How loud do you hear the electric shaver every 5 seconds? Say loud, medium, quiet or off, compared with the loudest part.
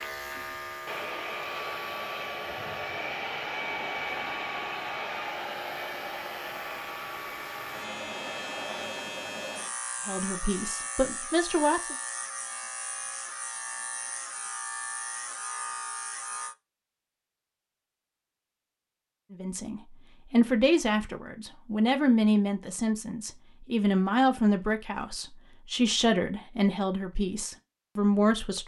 loud, loud, loud, loud, off, off.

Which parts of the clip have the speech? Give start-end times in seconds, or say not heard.
10.1-11.9, 19.3-28.6.